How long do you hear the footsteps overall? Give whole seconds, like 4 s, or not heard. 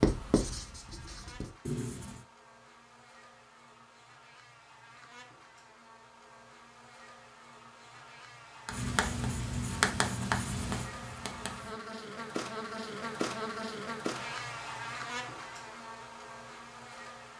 not heard.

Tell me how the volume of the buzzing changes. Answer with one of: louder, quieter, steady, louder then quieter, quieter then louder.
louder.